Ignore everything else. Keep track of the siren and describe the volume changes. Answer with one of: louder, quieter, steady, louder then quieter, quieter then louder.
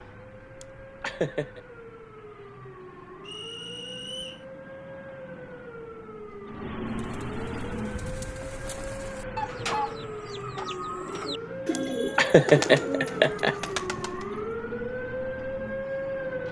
louder.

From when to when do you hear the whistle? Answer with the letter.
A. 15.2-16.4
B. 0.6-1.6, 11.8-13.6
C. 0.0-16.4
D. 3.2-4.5
D.